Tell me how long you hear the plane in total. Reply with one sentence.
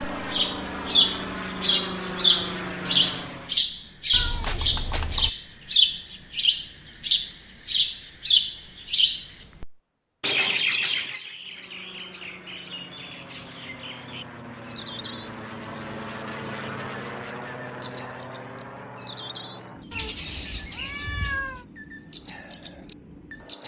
You can hear the plane for 16 seconds altogether.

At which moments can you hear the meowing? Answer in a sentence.
You can hear the meowing from 4.1 to 5.3 s and from 19.9 to 21.6 s.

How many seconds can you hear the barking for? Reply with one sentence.
You can't hear the barking here.